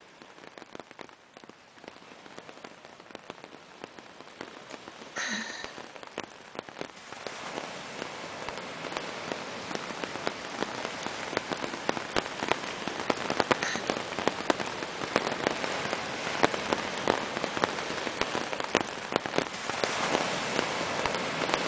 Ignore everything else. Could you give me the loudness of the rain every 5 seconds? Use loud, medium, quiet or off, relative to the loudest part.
quiet, medium, loud, loud, loud.